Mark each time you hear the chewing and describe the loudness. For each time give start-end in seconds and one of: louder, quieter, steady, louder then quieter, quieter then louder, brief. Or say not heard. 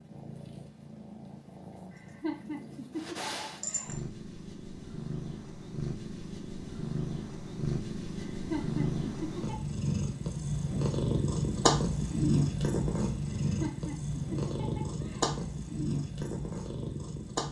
not heard.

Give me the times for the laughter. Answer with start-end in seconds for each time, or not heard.
1.9-4.0, 8.4-9.6, 13.3-15.4.